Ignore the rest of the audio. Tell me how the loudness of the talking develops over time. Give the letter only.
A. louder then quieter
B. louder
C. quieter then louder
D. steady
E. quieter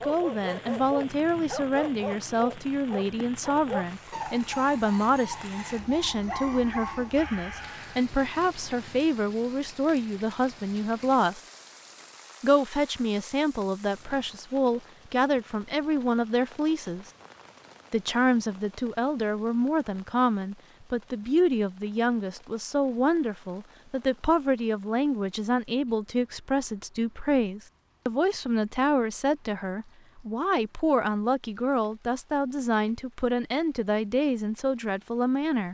D.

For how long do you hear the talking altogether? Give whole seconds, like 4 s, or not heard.
34 s.